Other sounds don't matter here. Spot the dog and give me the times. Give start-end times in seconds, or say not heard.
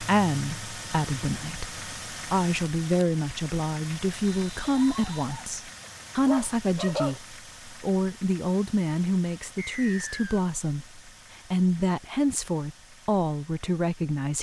4.7-7.2.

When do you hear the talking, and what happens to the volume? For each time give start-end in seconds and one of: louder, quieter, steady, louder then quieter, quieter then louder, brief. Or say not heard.
0.0-14.3 steady.